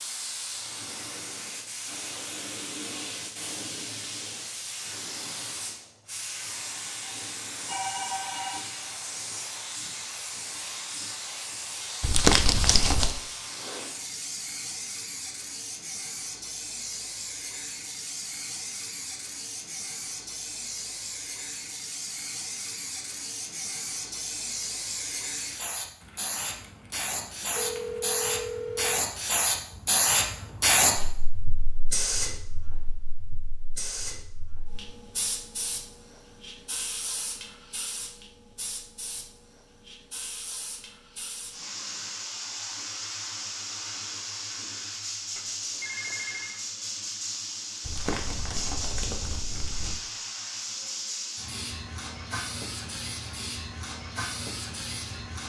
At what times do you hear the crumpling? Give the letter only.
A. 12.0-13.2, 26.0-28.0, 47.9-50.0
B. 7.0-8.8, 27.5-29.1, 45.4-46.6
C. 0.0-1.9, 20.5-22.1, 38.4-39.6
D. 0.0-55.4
A.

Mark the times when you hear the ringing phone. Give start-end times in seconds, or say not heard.
7.0-8.8, 27.5-29.1, 45.4-46.6.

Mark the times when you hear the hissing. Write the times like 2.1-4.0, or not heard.
0.0-55.4.